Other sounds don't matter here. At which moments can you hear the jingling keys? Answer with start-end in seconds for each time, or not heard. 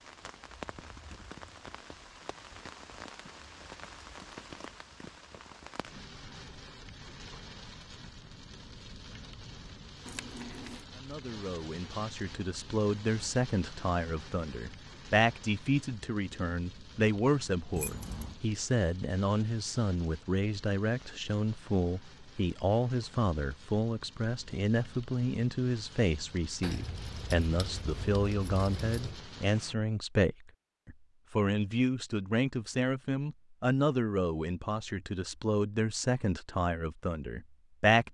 10.1-10.8, 17.8-18.4, 26.6-29.2.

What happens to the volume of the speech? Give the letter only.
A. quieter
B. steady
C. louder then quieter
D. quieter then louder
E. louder
B.